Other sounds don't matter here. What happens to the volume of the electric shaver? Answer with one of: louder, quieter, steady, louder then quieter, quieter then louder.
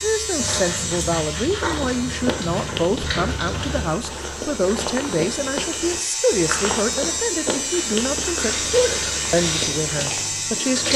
quieter then louder.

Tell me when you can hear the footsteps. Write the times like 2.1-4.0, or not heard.
1.6-10.3.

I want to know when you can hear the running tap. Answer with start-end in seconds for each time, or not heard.
0.0-3.9, 8.3-10.9.